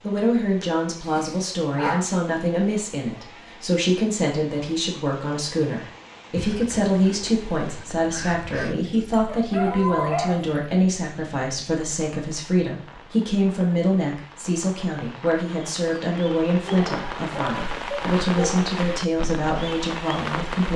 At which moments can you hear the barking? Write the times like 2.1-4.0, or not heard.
0.1-2.0, 8.8-10.4, 16.6-18.7.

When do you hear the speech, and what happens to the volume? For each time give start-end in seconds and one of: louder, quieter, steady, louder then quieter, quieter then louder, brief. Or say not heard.
0.0-20.7 steady.